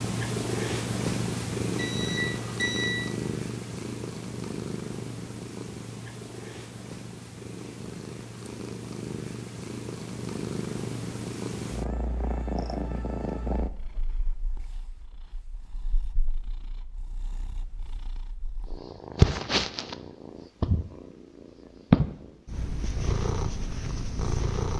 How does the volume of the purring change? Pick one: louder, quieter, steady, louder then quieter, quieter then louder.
quieter then louder.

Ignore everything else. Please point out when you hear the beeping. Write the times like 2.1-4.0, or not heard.
1.8-3.0.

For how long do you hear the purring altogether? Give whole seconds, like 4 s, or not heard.
25 s.